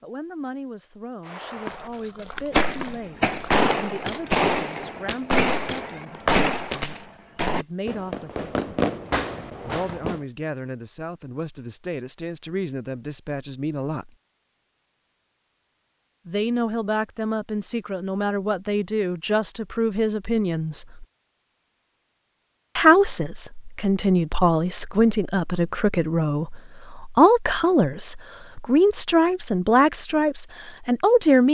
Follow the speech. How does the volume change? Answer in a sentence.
The loudness of the speech goes up.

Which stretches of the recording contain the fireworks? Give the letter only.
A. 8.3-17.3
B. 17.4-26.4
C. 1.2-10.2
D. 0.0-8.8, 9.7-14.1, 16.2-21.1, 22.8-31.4
C.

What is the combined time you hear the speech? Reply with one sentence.
You can hear the speech for 27 seconds altogether.